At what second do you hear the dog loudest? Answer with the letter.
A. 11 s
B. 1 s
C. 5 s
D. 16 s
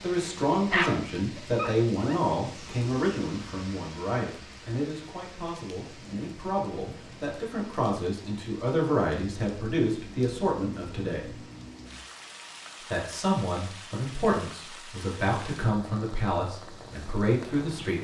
B.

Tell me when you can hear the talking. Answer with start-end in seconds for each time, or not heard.
0.0-11.3, 12.9-17.9.